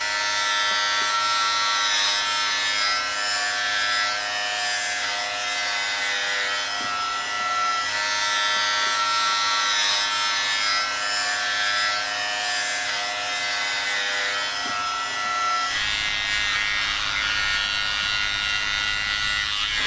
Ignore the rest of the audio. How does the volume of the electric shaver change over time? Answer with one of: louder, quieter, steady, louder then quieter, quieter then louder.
steady.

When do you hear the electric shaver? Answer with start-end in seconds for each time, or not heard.
0.0-19.8.